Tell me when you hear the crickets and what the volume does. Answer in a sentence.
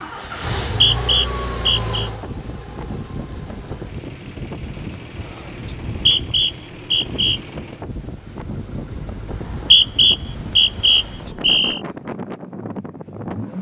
You can't hear the crickets here.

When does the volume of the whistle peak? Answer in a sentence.
The volume of the whistle peaks at 10 seconds.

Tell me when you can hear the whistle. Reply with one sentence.
You can hear the whistle from 0.7 to 2.1 s, from 5.7 to 7.4 s and from 9.3 to 11.8 s.